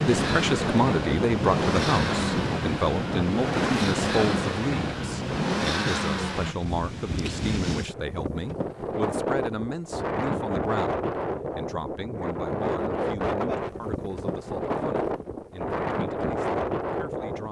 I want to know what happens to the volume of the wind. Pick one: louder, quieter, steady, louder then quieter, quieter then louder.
steady.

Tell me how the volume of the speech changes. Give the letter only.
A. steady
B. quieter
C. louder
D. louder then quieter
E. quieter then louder
B.